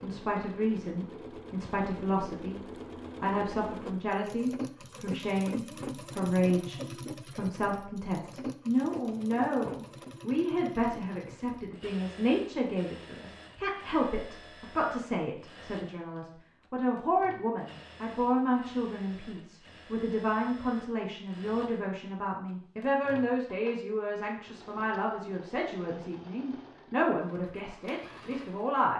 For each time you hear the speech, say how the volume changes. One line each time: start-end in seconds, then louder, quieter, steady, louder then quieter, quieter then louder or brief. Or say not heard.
0.0-28.9 steady.